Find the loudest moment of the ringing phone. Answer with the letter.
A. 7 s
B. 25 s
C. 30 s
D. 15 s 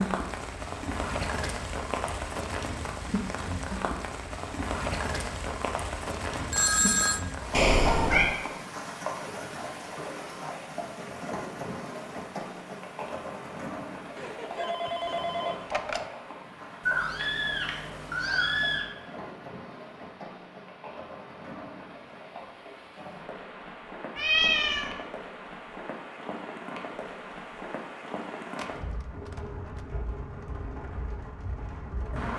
A.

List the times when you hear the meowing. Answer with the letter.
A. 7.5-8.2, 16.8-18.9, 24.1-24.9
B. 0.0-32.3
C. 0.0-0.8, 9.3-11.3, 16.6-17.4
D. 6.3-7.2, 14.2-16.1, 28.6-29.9
A.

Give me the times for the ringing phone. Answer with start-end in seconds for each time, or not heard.
6.3-7.2, 14.2-16.1, 28.6-29.9.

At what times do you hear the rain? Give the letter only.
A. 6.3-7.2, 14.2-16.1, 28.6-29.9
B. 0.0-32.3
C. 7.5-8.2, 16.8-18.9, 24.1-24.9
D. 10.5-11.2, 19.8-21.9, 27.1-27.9
B.